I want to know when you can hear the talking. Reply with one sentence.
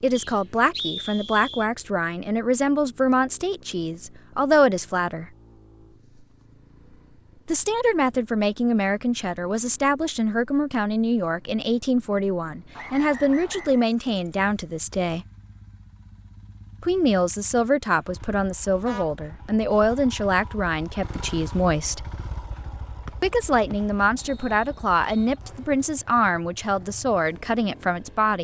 The talking can be heard from 0.0 to 5.3 s, from 7.5 to 15.2 s, from 16.8 to 22.1 s and from 23.2 to 28.3 s.